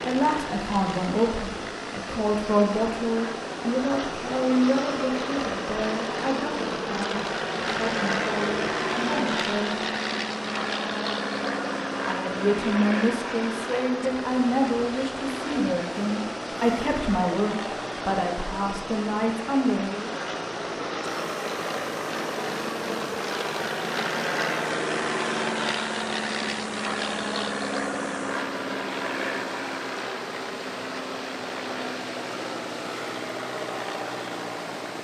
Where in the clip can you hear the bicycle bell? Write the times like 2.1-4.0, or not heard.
not heard.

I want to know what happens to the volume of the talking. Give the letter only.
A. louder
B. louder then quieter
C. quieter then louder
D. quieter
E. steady
E.